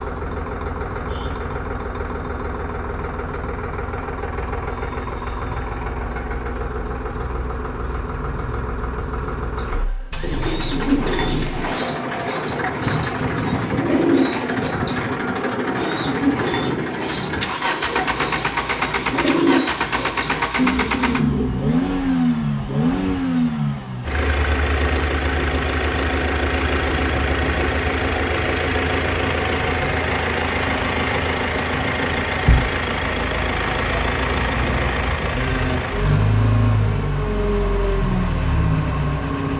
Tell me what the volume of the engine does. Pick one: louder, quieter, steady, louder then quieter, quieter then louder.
louder.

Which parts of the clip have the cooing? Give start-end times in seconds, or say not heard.
9.5-21.8.